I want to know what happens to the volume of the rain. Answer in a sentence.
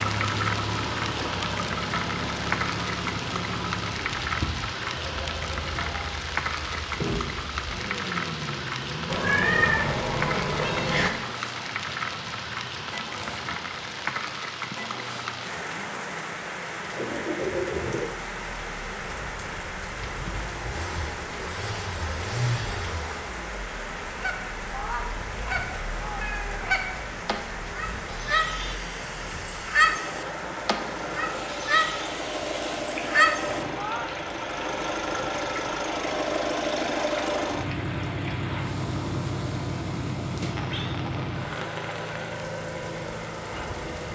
The loudness of the rain goes down.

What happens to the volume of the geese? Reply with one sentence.
The loudness of the geese goes up.